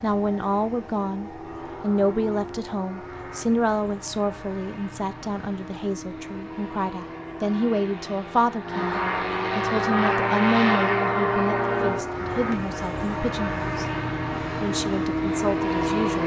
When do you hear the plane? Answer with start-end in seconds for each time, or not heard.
0.0-16.2.